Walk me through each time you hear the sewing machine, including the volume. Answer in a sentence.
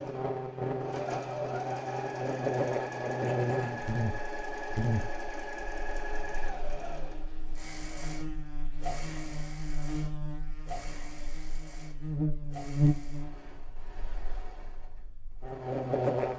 The sewing machine can be heard from 0.0 to 16.3 s, getting quieter.